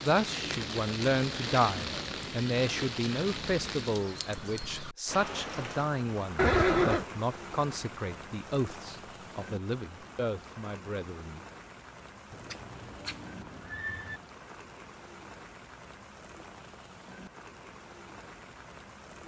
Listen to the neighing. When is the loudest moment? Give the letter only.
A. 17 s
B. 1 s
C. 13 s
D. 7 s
D.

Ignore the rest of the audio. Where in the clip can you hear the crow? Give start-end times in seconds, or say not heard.
not heard.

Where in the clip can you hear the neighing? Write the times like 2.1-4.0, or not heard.
6.3-7.0, 12.3-14.2.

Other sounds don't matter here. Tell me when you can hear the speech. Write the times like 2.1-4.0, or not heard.
0.0-11.4.